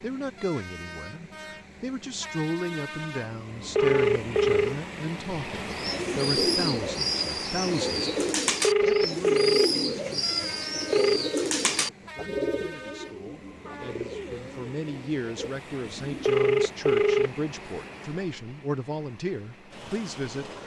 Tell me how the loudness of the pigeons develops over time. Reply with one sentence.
The volume of the pigeons goes down.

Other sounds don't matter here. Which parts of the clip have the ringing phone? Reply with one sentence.
You can hear the ringing phone from 3.8 to 4.8 s, from 8.6 to 11.2 s and from 16.2 to 17.3 s.